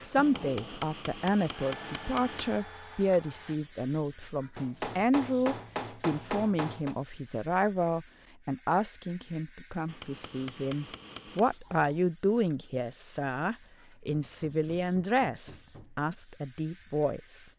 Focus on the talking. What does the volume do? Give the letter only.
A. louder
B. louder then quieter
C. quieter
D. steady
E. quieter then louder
D.